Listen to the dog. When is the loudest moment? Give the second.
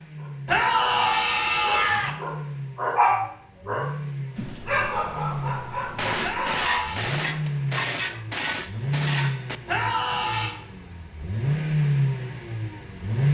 3 s.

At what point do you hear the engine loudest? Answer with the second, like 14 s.
12 s.